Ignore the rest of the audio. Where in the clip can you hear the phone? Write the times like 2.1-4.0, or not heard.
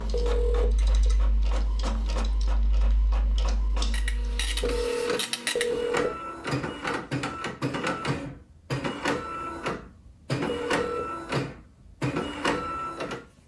0.1-1.1, 4.6-6.2, 10.4-11.0.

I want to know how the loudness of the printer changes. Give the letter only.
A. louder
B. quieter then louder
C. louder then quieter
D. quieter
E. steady
A.